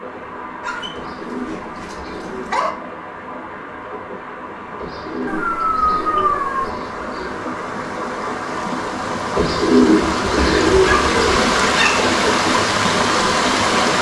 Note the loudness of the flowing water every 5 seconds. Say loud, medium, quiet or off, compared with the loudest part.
quiet, medium, loud.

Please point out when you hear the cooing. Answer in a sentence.
The cooing can be heard from 0.9 to 2.5 s, from 4.8 to 7.5 s and from 9.3 to 11.7 s.